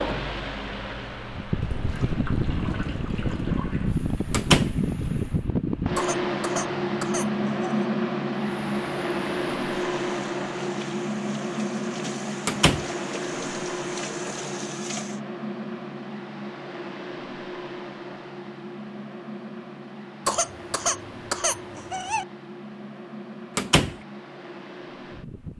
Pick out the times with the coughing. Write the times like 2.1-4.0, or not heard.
6.0-7.8, 20.2-22.2.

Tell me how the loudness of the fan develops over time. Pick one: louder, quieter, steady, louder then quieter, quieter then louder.
quieter.